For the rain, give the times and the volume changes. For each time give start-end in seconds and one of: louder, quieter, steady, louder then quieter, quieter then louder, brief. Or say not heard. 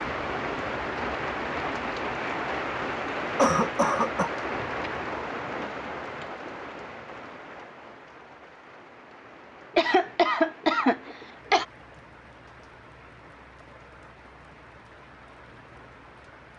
0.0-16.5 quieter.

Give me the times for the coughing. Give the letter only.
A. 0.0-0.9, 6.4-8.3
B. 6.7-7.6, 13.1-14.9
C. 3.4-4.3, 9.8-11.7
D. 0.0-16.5
C.